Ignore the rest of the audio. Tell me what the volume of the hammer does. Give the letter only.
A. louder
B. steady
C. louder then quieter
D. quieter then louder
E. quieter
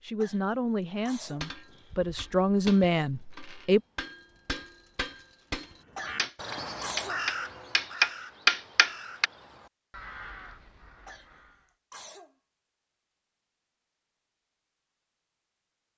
A.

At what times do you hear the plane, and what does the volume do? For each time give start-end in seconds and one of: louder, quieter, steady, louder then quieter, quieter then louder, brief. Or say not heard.
not heard.